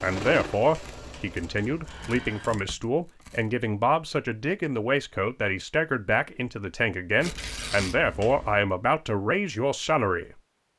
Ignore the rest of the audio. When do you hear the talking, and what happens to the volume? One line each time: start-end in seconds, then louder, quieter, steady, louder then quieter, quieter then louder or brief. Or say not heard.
0.0-10.3 steady.